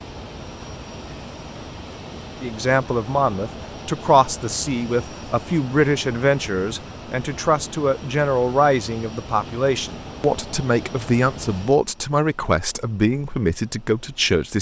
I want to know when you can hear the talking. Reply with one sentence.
The talking can be heard from 2.4 to 14.5 s.